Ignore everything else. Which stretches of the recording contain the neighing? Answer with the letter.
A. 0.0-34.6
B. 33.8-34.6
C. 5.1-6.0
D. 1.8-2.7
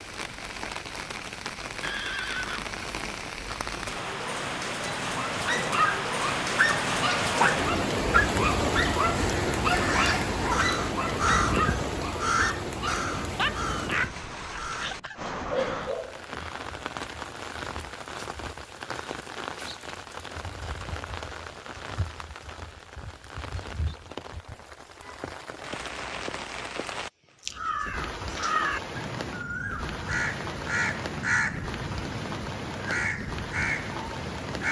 D.